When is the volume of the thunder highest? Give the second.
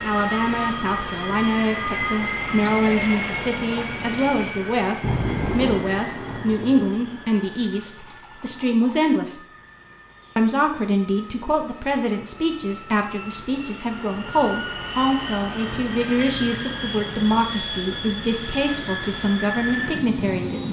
5 s.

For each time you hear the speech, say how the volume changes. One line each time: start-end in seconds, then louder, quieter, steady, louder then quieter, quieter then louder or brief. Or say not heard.
0.0-9.4 steady
10.3-20.6 steady.